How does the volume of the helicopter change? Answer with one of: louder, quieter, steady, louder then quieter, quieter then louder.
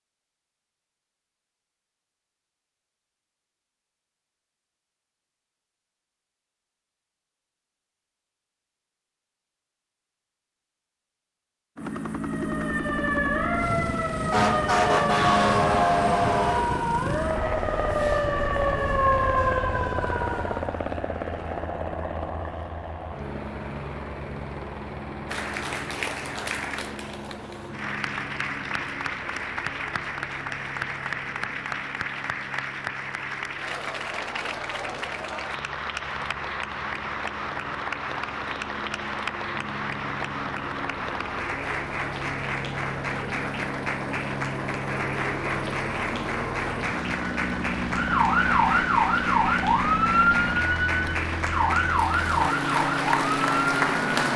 quieter then louder.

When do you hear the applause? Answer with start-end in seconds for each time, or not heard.
25.2-54.3.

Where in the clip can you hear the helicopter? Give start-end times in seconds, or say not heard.
11.8-54.3.